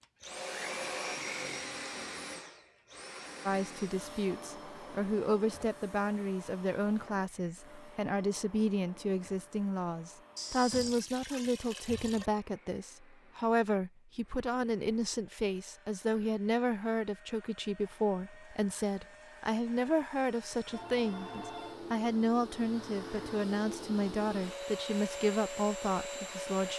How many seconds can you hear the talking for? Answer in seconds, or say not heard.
23 s.